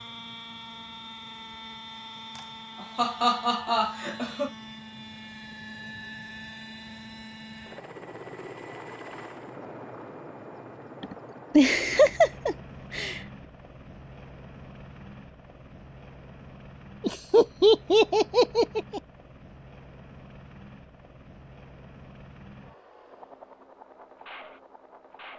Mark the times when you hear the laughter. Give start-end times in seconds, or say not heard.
2.4-4.5, 11.0-13.2, 17.0-19.0.